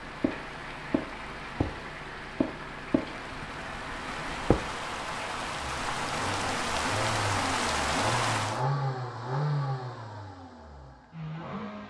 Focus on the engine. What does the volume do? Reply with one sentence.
The loudness of the engine goes up.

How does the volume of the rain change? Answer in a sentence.
The volume of the rain goes up.